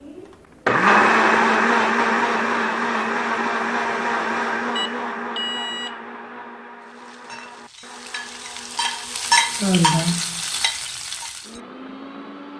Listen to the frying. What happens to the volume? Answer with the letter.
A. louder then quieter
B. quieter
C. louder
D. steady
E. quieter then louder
A.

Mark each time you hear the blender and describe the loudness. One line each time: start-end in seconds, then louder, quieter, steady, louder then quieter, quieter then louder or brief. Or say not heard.
0.1-12.5 quieter.